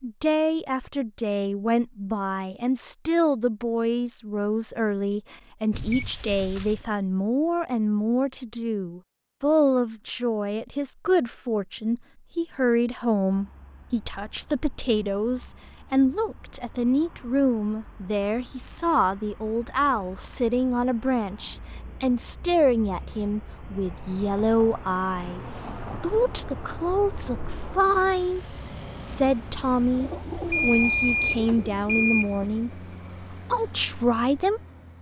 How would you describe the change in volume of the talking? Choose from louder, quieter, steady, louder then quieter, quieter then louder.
steady.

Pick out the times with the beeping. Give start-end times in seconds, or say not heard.
5.7-6.8, 30.5-32.4.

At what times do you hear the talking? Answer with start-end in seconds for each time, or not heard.
0.0-34.6.